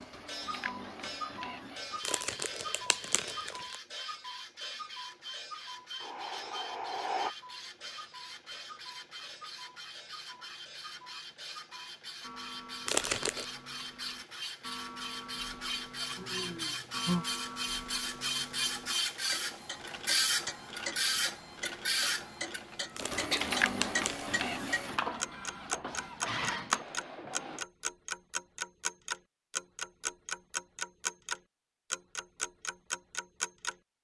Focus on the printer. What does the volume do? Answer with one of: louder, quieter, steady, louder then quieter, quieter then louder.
louder.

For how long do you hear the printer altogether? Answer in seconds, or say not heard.
28 s.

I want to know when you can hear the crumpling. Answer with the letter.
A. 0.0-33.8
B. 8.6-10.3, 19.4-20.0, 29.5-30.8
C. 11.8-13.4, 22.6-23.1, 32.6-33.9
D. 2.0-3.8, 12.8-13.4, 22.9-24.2
D.